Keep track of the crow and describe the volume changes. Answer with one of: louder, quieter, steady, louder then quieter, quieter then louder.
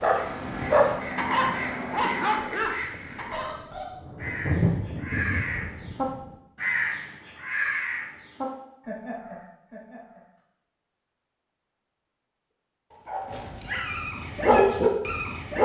louder then quieter.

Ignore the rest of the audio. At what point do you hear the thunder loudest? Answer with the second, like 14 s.
5 s.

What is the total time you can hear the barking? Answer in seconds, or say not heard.
6 s.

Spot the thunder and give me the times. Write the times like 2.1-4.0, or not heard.
2.8-6.3.